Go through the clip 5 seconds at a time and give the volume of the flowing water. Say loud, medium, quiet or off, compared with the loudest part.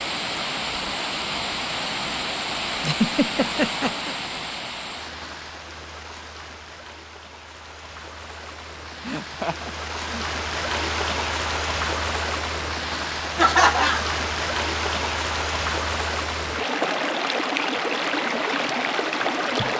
loud, quiet, loud, loud.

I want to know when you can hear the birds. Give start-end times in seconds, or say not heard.
not heard.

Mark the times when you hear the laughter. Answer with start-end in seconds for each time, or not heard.
2.8-4.2, 9.1-10.2, 13.3-14.1.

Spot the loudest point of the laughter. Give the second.
14 s.